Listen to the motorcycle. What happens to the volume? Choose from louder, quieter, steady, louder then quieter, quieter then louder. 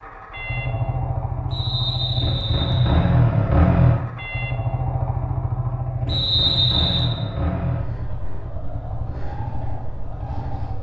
louder then quieter.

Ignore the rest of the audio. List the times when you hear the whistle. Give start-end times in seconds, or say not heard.
1.5-3.0, 6.0-7.1.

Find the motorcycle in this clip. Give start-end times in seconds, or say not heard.
0.0-10.7.